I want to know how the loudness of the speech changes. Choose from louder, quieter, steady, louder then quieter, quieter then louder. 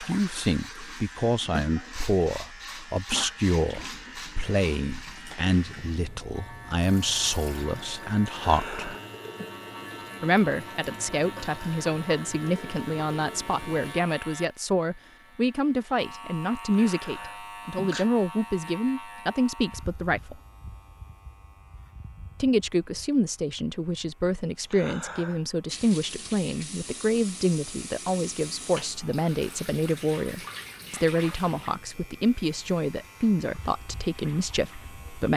steady.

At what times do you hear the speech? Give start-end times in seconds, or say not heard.
0.0-8.9, 10.2-20.4, 22.4-35.3.